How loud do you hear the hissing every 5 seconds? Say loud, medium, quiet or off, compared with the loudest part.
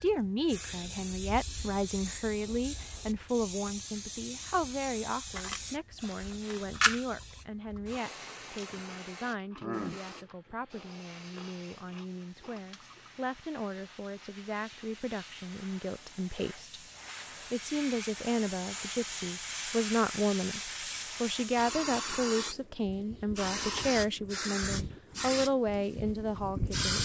medium, medium, quiet, medium, loud, loud.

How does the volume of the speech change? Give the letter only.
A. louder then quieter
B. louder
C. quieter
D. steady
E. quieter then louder
E.